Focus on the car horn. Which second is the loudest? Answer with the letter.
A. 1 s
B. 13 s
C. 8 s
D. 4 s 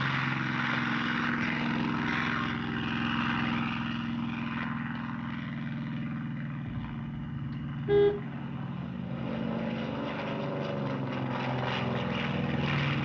C.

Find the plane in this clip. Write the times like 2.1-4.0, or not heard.
0.0-13.0.